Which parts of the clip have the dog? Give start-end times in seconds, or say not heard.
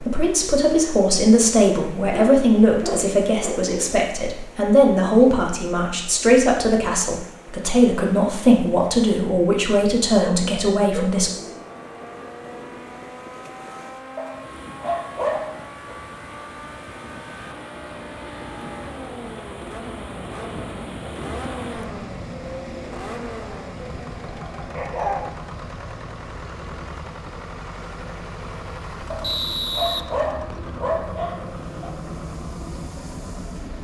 2.1-3.9, 10.2-11.6, 14.2-15.9, 23.8-25.3, 29.1-31.9.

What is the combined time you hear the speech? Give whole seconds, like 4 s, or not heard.
11 s.